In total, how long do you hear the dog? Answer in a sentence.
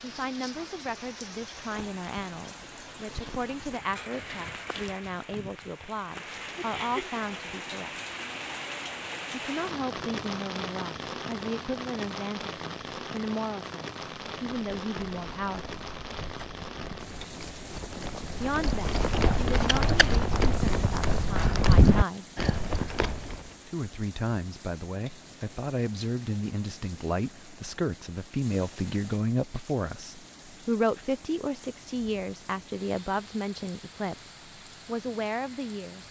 The dog can't be heard in this clip.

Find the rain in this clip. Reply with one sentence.
The rain can be heard from 0.0 to 36.0 s.